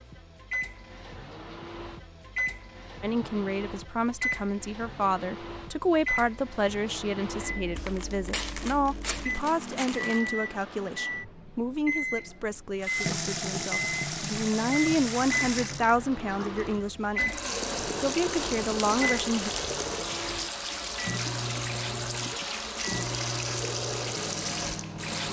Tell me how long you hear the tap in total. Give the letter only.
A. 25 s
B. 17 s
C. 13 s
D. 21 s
C.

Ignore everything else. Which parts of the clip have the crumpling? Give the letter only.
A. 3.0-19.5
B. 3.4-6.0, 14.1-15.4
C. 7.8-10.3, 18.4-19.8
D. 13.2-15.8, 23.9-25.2
C.